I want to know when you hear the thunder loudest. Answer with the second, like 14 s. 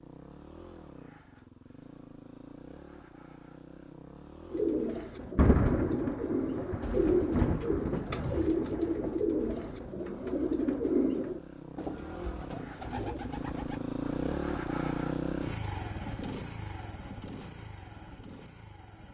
6 s.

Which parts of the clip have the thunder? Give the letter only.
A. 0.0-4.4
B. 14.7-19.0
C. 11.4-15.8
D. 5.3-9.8
D.